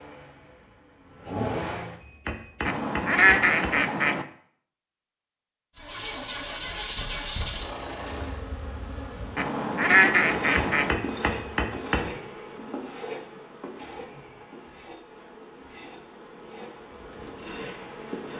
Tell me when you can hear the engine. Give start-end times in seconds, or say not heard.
0.0-2.0, 5.8-8.4.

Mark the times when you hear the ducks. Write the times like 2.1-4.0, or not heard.
2.6-4.2, 9.3-10.9.